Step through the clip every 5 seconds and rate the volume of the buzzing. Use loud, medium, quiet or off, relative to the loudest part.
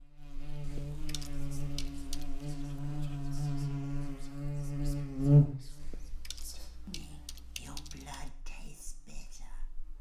medium, loud.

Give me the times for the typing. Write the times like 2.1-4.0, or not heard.
0.6-2.4, 5.8-8.2.